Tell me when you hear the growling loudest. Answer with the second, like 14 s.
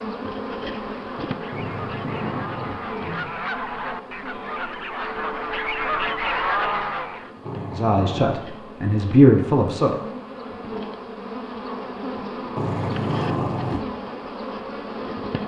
13 s.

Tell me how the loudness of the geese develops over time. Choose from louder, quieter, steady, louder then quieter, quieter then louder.
louder.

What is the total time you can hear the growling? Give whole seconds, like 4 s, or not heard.
4 s.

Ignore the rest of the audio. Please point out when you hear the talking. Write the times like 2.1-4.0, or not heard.
7.8-9.9.